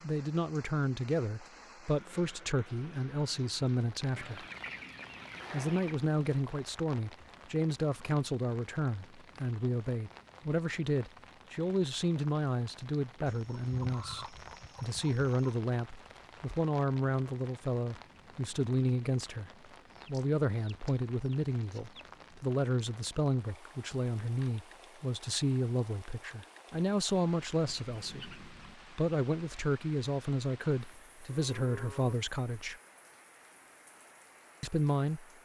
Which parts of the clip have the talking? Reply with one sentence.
The talking can be heard from 0.0 to 4.5 s, from 5.5 to 32.8 s and from 34.6 to 35.2 s.